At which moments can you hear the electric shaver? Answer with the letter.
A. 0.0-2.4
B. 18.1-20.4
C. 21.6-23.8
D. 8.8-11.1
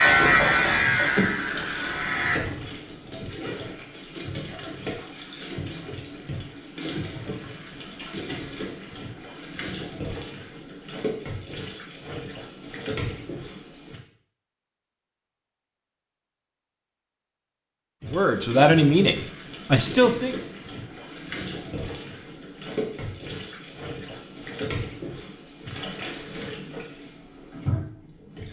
A.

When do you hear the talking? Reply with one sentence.
The talking can be heard from 18.1 to 20.4 s.